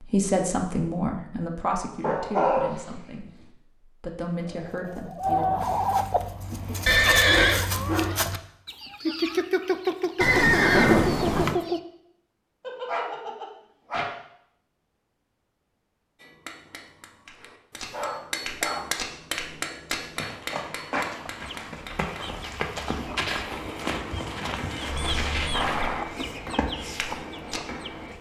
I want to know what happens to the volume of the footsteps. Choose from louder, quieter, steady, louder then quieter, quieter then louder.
steady.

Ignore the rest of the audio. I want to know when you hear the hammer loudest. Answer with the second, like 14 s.
19 s.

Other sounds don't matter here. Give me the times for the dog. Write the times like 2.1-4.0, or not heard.
2.0-3.5, 7.2-8.1, 12.6-14.2, 17.4-19.0, 22.9-23.3.